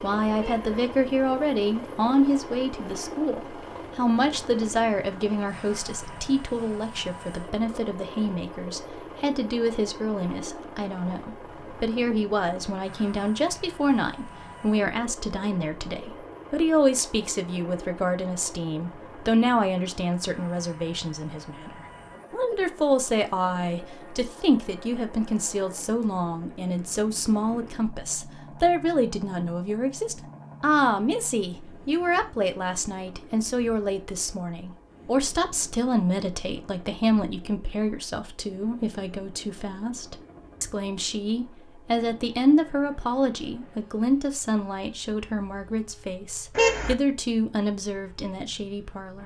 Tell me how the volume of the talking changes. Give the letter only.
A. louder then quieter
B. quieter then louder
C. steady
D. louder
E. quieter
C.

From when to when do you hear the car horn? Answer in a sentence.
The car horn can be heard from 0.3 to 0.8 s and from 46.5 to 47.0 s.